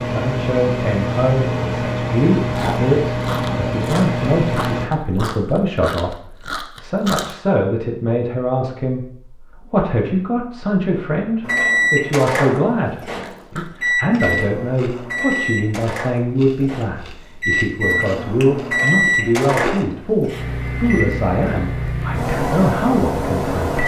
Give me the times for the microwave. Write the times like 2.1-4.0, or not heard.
0.0-4.9, 11.4-23.8.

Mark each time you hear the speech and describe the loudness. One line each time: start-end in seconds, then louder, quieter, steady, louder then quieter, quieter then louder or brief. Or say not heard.
0.1-23.8 steady.